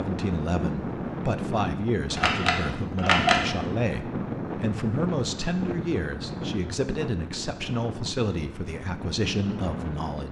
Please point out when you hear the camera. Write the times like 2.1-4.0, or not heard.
2.1-3.5.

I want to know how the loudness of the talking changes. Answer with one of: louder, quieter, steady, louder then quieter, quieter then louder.
steady.